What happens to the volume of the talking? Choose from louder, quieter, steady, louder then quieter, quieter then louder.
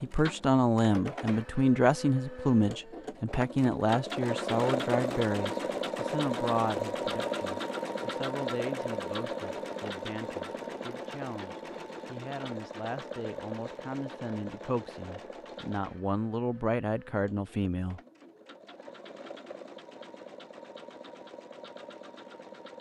quieter then louder.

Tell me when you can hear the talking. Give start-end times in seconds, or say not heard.
0.0-18.0.